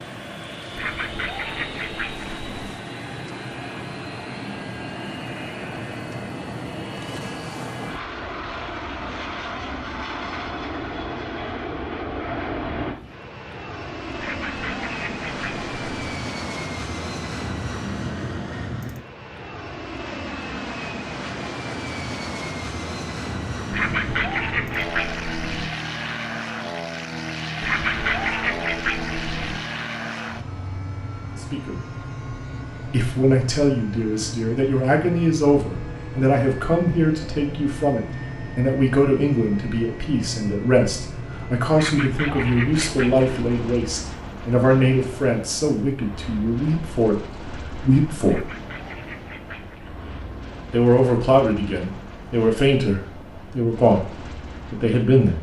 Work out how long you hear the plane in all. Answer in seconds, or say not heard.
55 s.